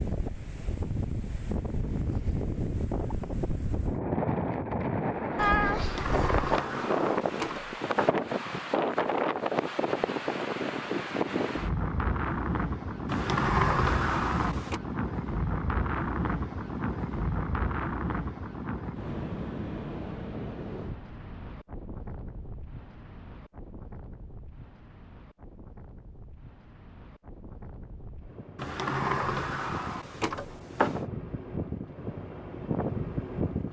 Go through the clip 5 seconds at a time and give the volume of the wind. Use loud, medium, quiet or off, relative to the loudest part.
loud, loud, loud, loud, quiet, quiet, medium.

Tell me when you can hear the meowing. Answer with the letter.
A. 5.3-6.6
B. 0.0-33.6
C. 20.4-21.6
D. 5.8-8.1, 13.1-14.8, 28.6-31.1
A.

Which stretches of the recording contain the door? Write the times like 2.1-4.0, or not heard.
5.8-8.1, 13.1-14.8, 28.6-31.1.